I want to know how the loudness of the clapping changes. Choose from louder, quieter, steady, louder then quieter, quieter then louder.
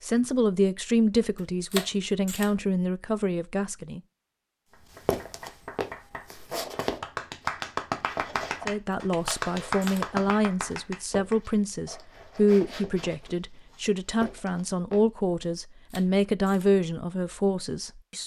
louder.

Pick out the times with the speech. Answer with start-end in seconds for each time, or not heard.
0.0-4.0, 8.7-18.2.